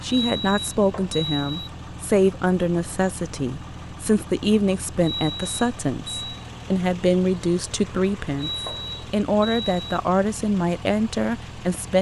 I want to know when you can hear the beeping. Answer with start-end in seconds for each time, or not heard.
0.1-1.7, 5.0-6.5, 8.3-10.0.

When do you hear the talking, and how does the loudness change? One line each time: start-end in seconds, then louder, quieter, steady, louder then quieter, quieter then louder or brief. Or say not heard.
0.0-11.9 steady.